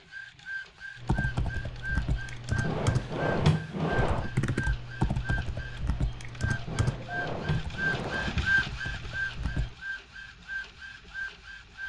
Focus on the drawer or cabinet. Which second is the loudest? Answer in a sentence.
The loudest moment of the drawer or cabinet is at 3 seconds.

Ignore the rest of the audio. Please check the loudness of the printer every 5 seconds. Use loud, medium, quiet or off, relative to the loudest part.
medium, loud, medium.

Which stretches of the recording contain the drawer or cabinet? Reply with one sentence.
The drawer or cabinet can be heard from 2.6 to 4.3 s and from 6.7 to 8.6 s.